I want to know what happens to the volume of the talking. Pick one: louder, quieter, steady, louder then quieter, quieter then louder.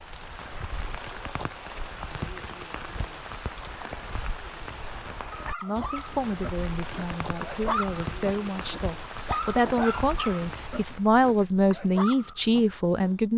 louder.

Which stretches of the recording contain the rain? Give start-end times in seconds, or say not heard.
0.0-11.1.